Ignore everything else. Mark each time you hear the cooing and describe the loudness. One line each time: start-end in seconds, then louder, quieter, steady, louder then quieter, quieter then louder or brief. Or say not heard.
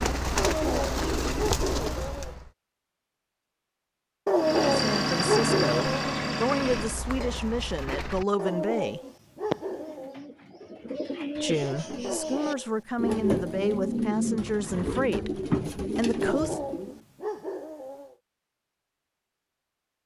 0.0-2.5 brief
6.8-17.0 louder.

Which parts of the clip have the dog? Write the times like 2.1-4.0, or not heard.
0.3-2.4, 4.2-6.1, 8.3-10.2, 12.0-14.0, 16.2-18.1.